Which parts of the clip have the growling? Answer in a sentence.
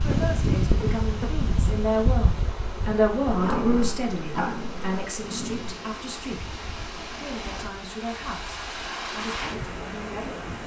The growling can be heard from 3.2 to 5.8 s.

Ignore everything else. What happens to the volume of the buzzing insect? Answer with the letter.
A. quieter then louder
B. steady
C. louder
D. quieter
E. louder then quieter
D.